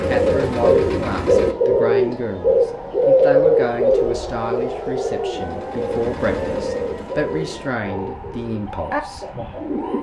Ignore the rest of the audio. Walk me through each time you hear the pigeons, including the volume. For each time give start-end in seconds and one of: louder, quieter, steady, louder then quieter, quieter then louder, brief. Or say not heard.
0.0-9.9 quieter.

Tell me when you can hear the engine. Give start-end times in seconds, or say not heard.
0.0-1.6, 5.3-7.7.